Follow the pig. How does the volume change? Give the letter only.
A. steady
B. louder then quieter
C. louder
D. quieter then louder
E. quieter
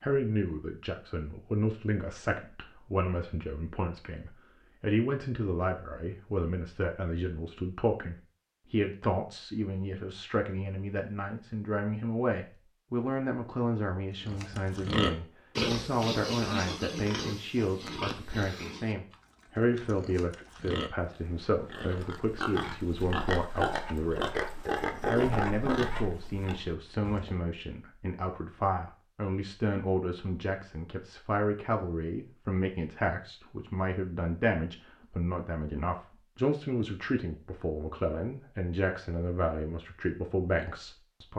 D.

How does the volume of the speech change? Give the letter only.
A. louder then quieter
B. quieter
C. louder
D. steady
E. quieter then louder
D.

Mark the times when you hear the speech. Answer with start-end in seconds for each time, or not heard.
0.0-24.4, 25.1-41.3.